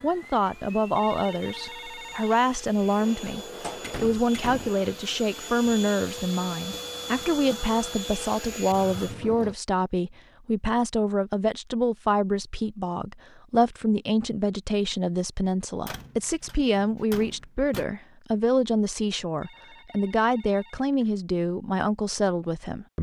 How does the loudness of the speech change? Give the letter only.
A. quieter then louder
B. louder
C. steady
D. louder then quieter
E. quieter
C.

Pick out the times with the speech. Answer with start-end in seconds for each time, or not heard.
0.0-22.9.